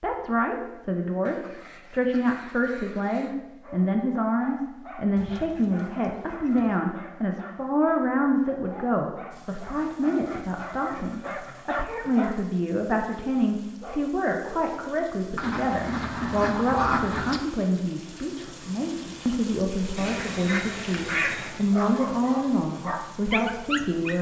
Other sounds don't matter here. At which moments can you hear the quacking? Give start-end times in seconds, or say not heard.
1.2-3.4, 5.2-6.8, 9.8-11.7, 15.3-17.4, 19.9-21.6.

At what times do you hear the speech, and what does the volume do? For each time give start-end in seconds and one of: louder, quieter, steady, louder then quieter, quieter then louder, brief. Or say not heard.
0.0-24.1 steady.